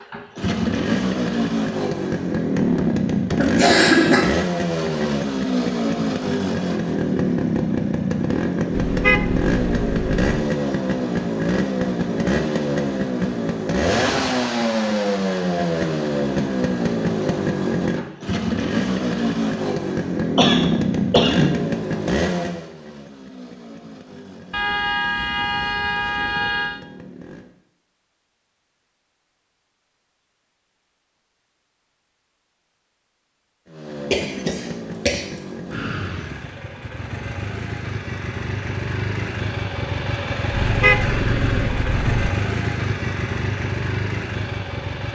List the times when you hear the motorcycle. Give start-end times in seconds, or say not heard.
0.0-27.6, 33.6-45.1.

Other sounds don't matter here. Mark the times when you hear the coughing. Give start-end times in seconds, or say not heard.
3.4-4.2, 20.4-21.6, 34.1-35.2.